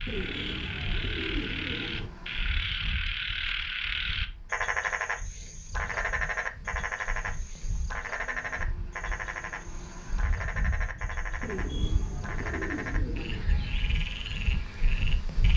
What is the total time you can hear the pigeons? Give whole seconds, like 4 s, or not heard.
4 s.